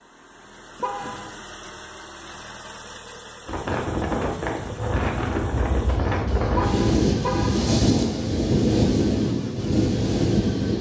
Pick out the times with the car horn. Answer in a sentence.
The car horn can be heard from 0.8 to 1.4 s and from 6.5 to 7.8 s.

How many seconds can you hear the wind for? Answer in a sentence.
The wind can be heard for 7 seconds in total.